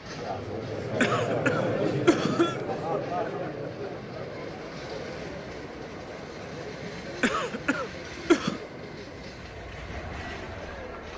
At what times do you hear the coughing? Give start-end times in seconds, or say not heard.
1.0-2.6, 7.2-8.6.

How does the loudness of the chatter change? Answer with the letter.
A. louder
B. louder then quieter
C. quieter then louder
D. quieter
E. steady
D.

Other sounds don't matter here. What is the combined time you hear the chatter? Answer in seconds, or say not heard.
11 s.